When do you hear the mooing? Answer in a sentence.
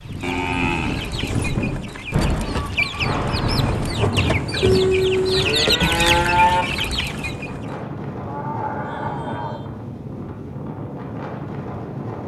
The mooing can be heard from 0.2 to 1.5 s, from 4.6 to 6.7 s and from 8.2 to 9.7 s.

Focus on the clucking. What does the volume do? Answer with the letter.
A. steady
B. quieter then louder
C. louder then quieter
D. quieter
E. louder
E.